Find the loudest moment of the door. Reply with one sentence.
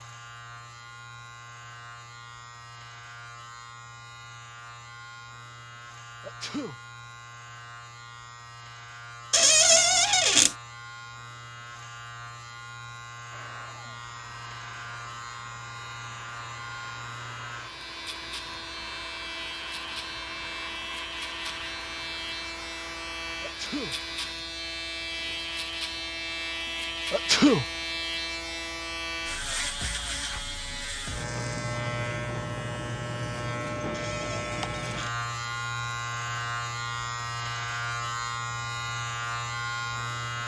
The loudest moment of the door is at 10 seconds.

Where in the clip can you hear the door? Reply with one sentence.
The door can be heard from 9.3 to 10.6 s and from 33.9 to 35.1 s.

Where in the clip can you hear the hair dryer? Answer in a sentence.
You can hear the hair dryer from 13.3 to 24.4 s.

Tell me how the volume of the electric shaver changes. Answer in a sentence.
The loudness of the electric shaver goes up.